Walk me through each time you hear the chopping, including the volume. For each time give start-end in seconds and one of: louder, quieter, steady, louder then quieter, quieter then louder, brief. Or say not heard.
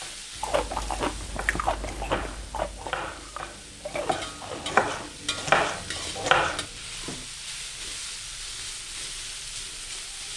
0.0-7.2 louder.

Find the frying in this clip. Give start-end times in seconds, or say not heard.
0.0-10.3.